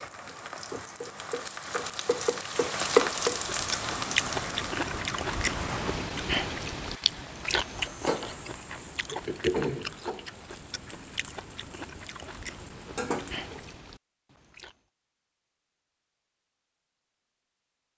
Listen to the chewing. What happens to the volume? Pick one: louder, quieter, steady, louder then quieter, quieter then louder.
quieter.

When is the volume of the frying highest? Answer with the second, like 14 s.
3 s.